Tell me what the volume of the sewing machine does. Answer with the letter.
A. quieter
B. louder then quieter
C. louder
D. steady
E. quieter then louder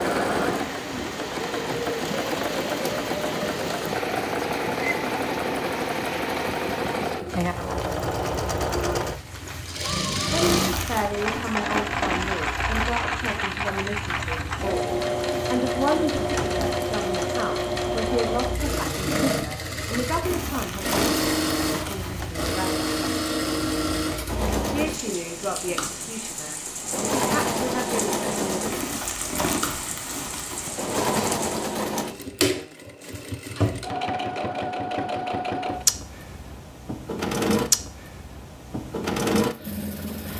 D.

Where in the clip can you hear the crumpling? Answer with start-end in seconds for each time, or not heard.
10.4-11.1, 20.2-22.3, 28.6-30.8.